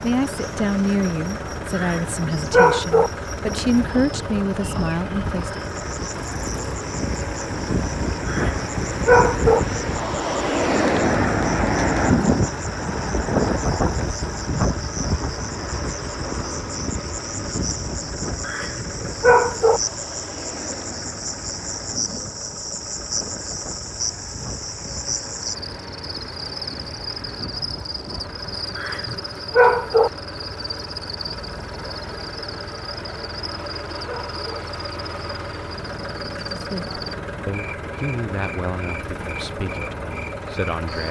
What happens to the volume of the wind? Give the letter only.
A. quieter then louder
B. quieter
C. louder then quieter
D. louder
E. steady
C.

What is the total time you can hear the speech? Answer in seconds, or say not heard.
10 s.